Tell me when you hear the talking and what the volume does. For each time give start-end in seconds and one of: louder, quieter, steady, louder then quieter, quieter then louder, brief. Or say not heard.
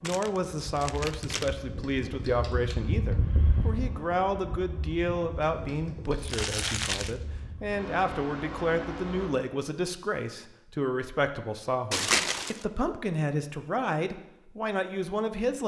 0.0-15.6 steady.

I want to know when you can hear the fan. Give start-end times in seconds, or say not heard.
0.0-9.3.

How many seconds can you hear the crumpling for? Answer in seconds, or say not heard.
3 s.